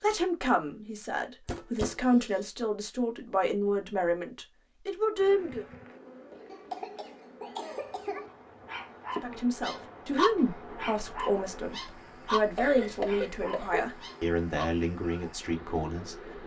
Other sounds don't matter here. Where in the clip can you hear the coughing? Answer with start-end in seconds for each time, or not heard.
1.4-2.5, 6.5-8.3, 12.6-13.9.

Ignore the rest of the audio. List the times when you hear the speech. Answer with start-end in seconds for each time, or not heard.
0.0-5.7, 9.2-16.1.